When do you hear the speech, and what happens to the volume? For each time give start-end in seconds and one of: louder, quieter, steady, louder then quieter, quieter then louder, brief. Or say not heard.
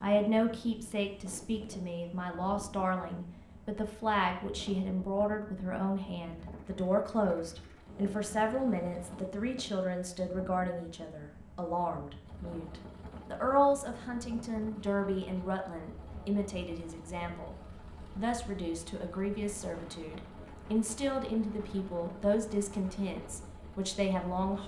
0.0-24.6 steady.